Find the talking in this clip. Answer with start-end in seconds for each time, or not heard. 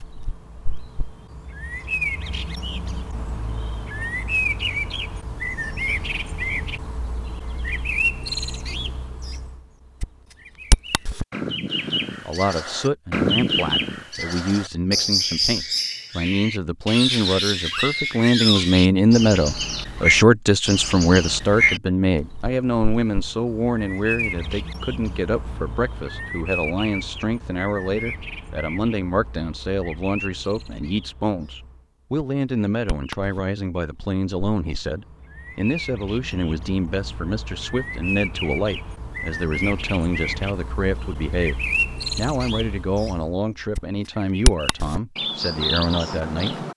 12.2-46.6.